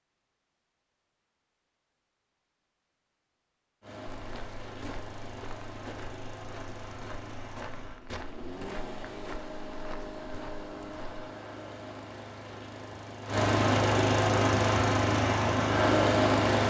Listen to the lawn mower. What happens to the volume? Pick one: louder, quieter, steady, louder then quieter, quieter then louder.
louder.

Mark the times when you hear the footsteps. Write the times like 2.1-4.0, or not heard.
4.1-11.2.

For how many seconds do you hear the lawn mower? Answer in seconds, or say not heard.
13 s.